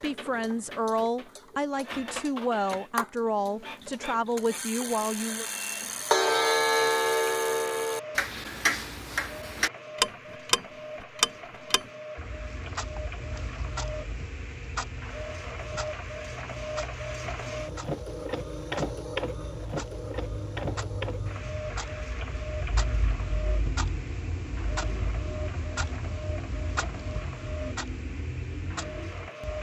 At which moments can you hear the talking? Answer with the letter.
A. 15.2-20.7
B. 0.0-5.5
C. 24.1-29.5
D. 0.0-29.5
B.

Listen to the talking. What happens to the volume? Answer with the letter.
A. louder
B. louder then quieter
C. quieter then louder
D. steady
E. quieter
D.